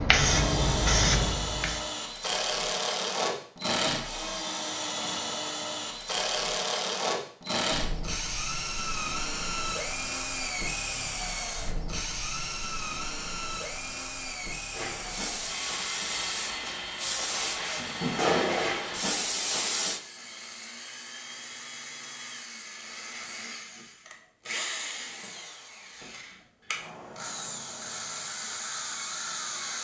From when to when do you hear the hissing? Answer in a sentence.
You can hear the hissing from 0.0 to 1.9 s and from 14.8 to 20.0 s.